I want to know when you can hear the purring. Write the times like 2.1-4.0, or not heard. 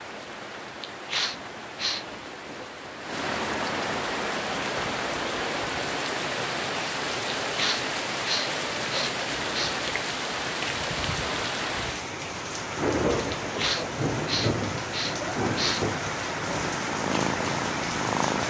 16.4-18.4.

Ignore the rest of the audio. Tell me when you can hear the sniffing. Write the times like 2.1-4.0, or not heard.
0.8-2.0, 7.5-9.8, 13.3-15.8.